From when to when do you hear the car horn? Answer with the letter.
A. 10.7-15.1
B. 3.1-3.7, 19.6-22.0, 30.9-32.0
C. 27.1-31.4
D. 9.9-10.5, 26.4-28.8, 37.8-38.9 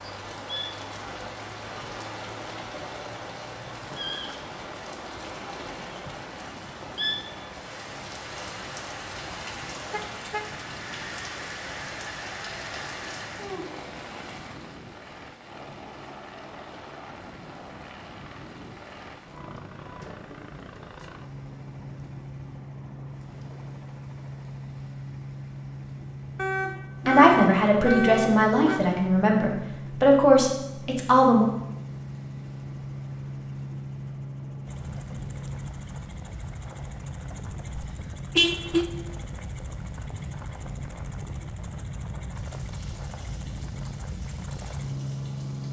D.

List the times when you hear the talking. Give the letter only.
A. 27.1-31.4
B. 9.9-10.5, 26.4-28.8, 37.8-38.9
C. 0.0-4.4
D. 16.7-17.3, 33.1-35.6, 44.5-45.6
A.